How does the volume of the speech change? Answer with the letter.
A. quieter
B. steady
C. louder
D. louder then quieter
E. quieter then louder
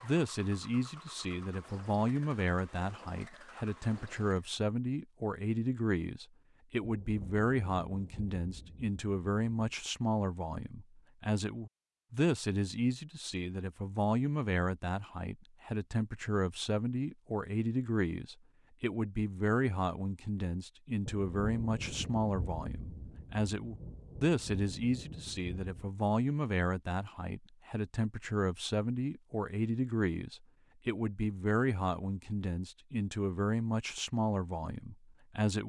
B.